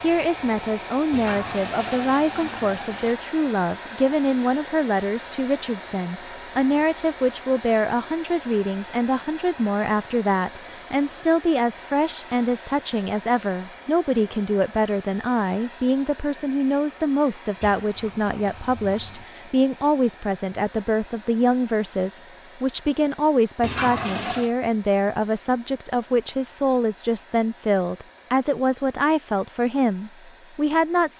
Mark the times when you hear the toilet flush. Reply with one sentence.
You can hear the toilet flush from 1.1 to 3.1 s, from 17.6 to 19.2 s and from 23.6 to 24.6 s.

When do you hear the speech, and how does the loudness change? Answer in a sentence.
You can hear the speech from 0.0 to 31.1 s, at a steady volume.